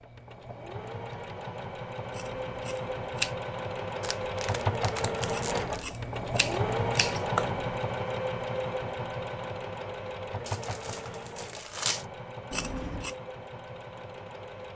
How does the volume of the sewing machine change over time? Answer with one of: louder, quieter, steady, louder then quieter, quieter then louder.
louder then quieter.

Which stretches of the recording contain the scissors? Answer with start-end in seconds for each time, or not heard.
2.1-3.4, 5.3-7.8, 12.5-13.2.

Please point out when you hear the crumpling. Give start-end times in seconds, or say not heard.
4.0-5.8, 10.4-12.1.